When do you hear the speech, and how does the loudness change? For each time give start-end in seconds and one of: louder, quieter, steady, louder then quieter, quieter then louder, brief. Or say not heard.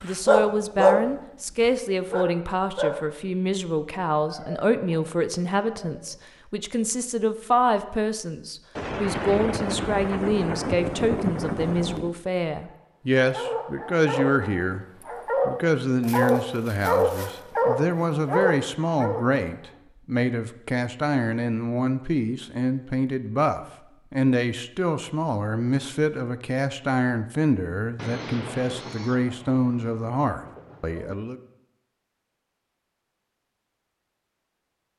0.0-14.8 steady
15.4-31.4 steady.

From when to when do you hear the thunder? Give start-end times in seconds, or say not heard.
8.8-12.2, 27.9-31.1.